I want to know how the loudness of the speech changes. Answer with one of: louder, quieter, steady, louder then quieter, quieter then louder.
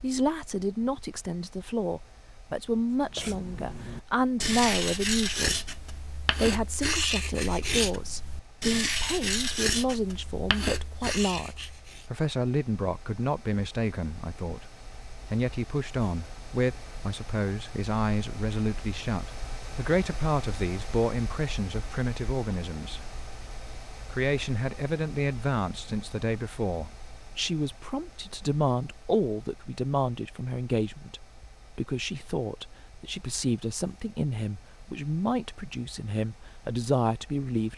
steady.